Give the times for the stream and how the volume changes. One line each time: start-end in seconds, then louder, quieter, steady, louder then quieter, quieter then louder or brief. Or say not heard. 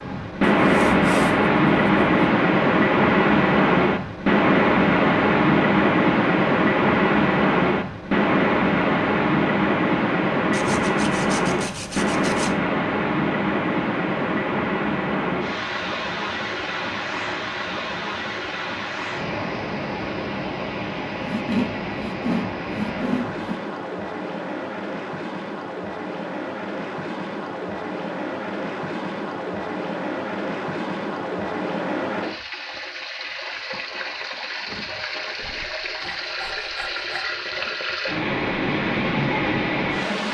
0.0-40.2 quieter.